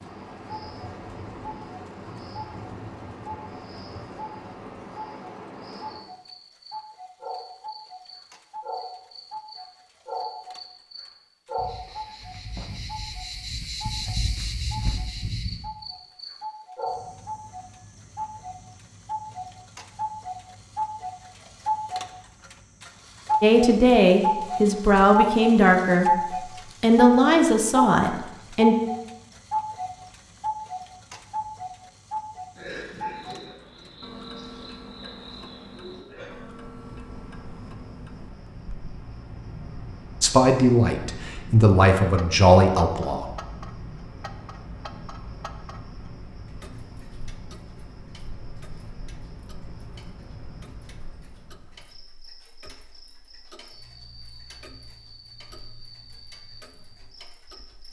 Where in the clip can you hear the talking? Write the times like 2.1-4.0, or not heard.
23.4-28.8, 40.2-43.4.